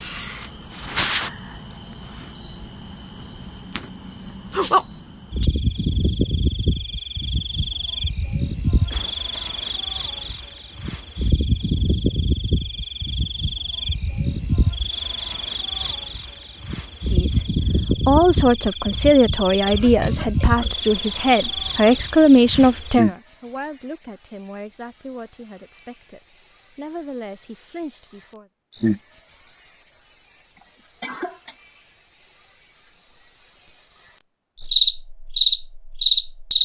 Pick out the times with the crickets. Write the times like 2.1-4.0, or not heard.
0.0-36.6.